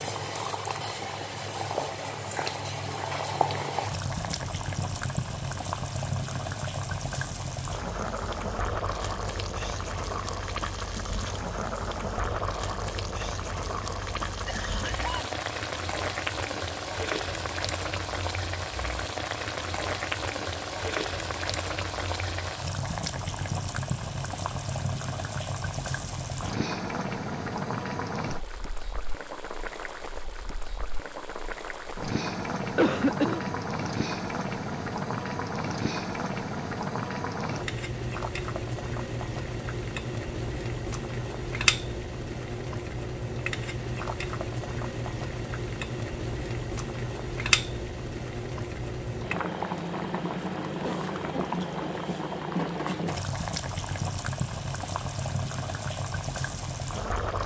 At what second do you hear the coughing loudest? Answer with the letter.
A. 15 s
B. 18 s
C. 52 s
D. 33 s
D.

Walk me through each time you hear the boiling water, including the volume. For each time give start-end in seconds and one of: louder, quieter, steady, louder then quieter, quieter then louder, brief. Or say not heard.
0.0-57.4 steady.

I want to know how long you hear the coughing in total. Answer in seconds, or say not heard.
3 s.